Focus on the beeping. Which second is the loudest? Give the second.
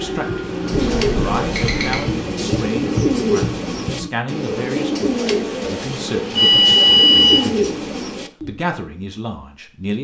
7 s.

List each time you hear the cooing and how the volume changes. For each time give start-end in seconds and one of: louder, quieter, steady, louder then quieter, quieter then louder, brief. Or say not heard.
0.4-8.6 steady.